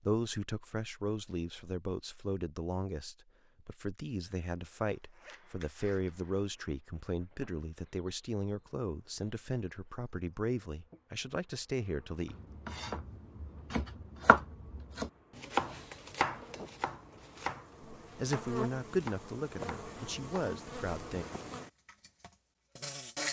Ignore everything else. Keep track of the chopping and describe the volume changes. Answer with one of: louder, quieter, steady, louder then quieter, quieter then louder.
louder then quieter.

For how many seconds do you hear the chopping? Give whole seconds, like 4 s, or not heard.
8 s.